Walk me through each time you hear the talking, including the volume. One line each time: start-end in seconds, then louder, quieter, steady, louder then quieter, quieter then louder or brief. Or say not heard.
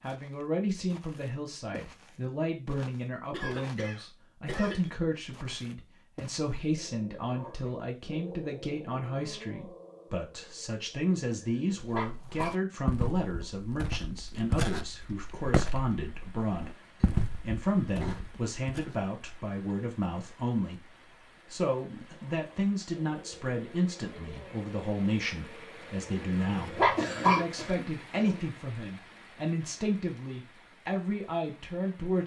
0.0-32.2 steady.